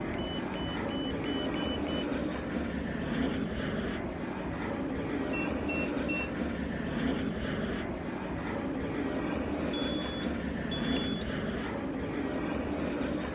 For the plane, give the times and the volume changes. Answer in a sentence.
You can hear the plane from 0.0 to 13.3 s, at a steady volume.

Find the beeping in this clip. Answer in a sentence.
The beeping can be heard from 0.1 to 2.0 s, from 5.5 to 6.3 s and from 9.7 to 11.2 s.